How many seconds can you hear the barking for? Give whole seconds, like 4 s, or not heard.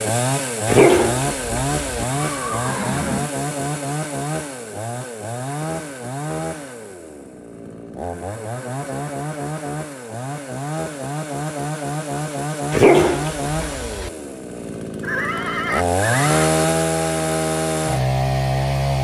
3 s.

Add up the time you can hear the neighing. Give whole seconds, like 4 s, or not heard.
3 s.